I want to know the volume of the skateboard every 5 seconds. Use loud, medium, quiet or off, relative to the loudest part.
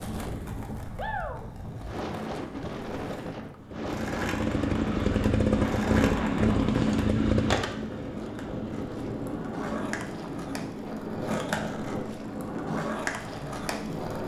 medium, loud, loud.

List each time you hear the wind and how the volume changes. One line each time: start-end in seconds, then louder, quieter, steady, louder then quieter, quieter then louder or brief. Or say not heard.
0.0-14.2 steady.